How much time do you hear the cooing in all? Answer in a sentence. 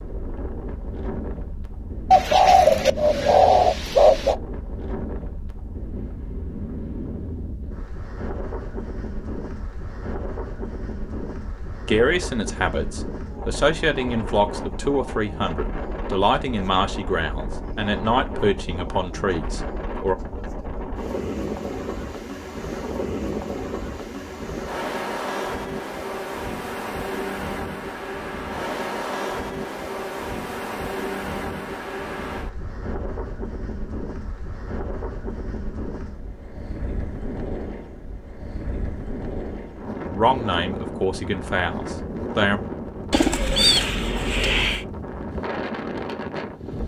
You can hear the cooing for 4 seconds altogether.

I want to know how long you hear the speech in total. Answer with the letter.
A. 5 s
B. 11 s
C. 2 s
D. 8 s
B.